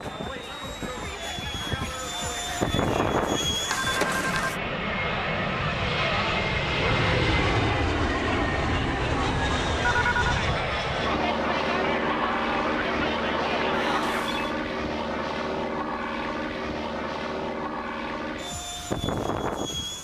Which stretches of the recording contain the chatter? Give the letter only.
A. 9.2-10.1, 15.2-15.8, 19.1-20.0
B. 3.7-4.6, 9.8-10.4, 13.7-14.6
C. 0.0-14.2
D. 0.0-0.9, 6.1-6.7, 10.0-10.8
C.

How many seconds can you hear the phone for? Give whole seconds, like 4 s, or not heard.
2 s.